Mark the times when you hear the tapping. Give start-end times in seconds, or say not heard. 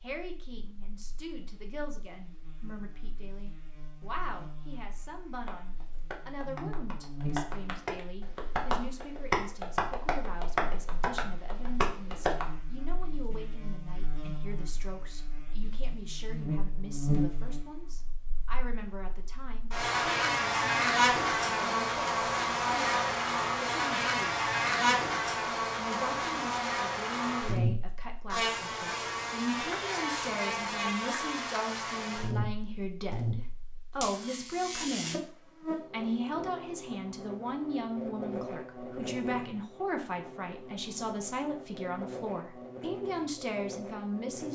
5.5-12.4.